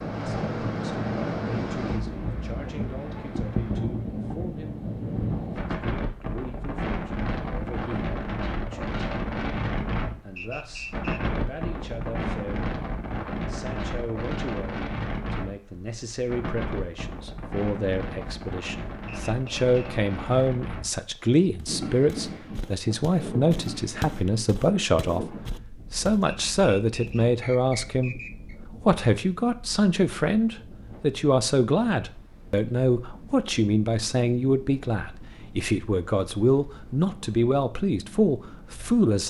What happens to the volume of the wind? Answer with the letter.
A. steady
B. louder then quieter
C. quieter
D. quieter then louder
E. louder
C.